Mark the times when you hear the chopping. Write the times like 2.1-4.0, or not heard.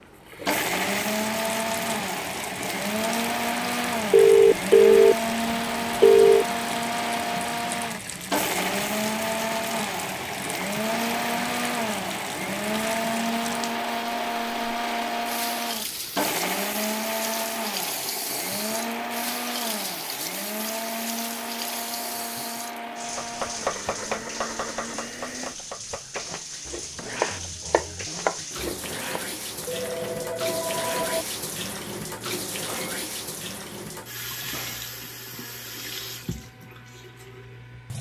23.1-29.0.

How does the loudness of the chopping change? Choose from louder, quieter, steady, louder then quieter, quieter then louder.
quieter then louder.